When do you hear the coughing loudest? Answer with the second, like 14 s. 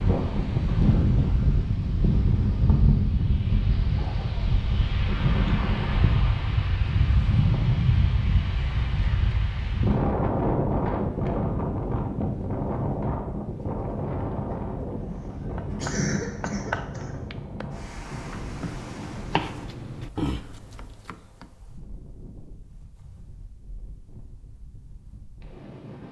16 s.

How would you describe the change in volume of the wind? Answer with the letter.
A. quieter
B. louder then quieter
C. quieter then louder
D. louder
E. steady
A.